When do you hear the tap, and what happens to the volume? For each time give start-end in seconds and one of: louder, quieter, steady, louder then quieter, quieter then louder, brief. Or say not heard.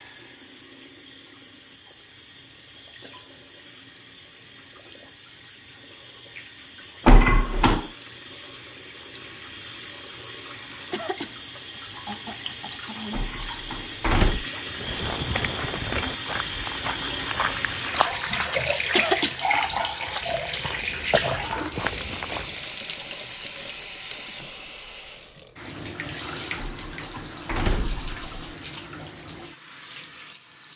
0.0-30.7 louder then quieter.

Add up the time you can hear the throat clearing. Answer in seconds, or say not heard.
3 s.